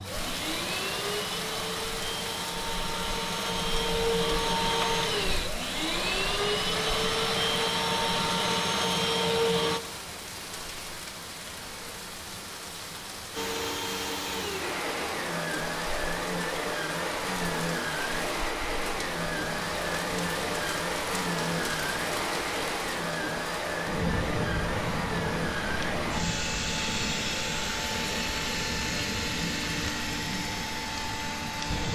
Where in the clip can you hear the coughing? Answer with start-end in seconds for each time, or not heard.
not heard.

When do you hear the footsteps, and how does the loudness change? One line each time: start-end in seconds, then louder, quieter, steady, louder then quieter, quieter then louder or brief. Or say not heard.
not heard.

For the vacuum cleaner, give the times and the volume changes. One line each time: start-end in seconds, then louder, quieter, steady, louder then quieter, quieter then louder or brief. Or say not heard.
0.0-9.8 louder
13.3-31.9 steady.